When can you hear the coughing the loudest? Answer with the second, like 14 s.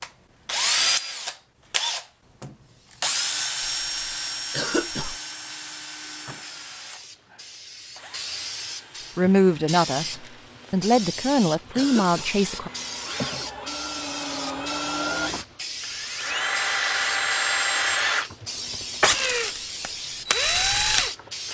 5 s.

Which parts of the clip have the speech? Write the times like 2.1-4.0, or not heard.
9.2-12.7.